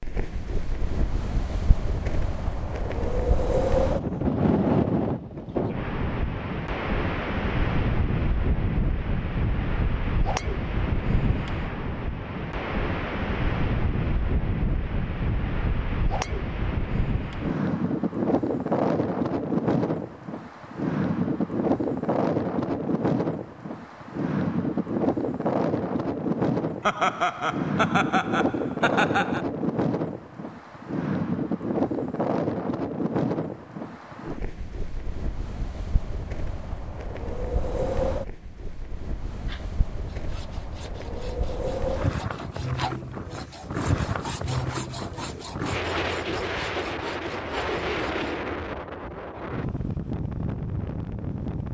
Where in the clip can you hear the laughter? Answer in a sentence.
The laughter can be heard from 26.8 to 29.4 s.